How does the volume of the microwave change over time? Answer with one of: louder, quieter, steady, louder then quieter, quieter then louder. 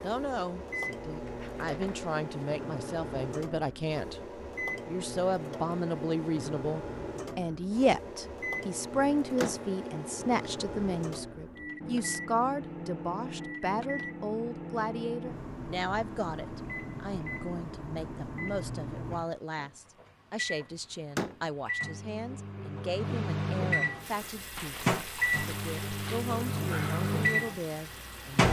louder.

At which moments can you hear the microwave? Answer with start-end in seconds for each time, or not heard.
0.0-28.4.